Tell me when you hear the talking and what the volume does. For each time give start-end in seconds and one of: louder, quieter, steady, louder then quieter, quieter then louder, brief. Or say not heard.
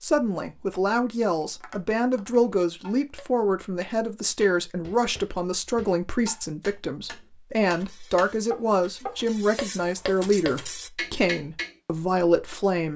0.0-12.9 steady.